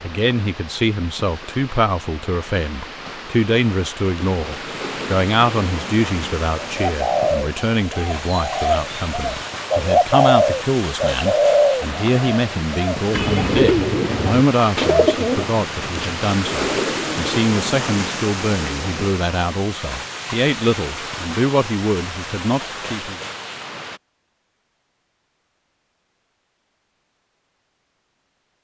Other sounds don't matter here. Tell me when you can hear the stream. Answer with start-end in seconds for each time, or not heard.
0.0-24.0.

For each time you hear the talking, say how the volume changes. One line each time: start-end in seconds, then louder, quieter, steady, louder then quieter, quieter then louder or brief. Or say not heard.
0.0-23.2 steady.